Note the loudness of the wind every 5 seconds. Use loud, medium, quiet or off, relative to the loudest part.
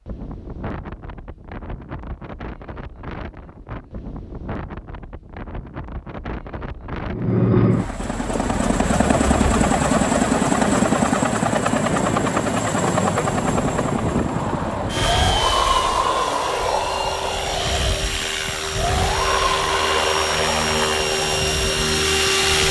quiet, medium, loud, loud, medium.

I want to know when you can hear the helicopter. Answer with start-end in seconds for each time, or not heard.
7.0-22.6.